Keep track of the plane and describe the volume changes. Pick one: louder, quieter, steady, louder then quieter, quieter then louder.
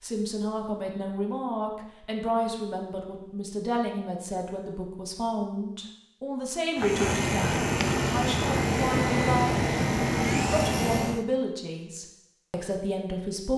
steady.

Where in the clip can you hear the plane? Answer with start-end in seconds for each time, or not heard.
6.8-11.2.